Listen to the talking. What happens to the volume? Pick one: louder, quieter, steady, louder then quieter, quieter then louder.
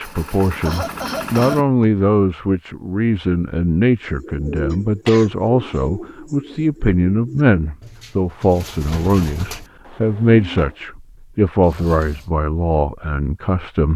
steady.